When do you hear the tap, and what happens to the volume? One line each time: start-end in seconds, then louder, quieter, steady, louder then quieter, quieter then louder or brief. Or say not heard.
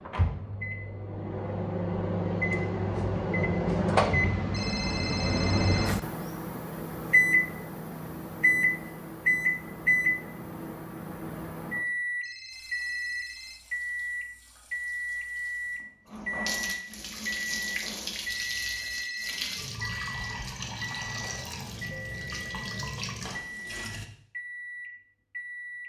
12.5-24.1 louder.